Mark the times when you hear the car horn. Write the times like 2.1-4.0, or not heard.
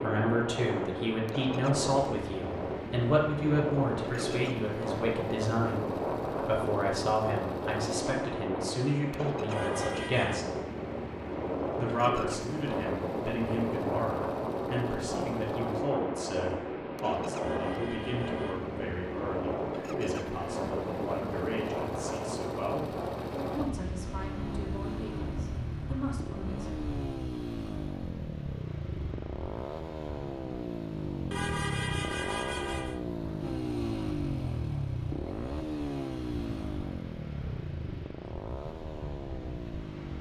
9.5-10.4, 17.4-18.6, 31.3-33.0.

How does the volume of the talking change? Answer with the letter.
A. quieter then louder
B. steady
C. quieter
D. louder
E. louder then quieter
C.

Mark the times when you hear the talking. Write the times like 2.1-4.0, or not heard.
0.0-10.4, 11.8-26.8.